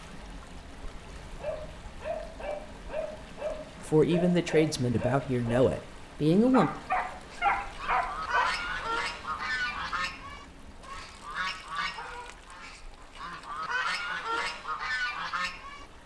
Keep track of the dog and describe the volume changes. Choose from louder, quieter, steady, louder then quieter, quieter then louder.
louder.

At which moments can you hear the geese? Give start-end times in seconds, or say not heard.
7.3-15.8.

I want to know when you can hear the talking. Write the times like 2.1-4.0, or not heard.
3.9-6.7.